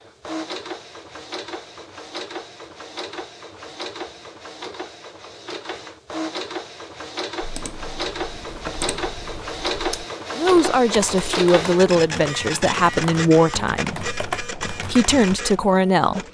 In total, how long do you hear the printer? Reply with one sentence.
The printer can be heard for 16 seconds in total.